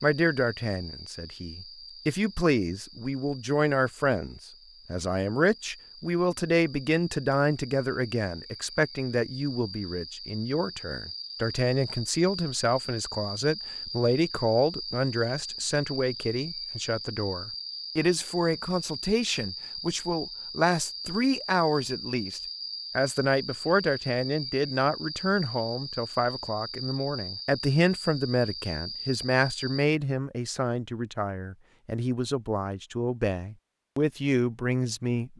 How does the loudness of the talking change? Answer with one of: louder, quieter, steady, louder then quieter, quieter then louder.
steady.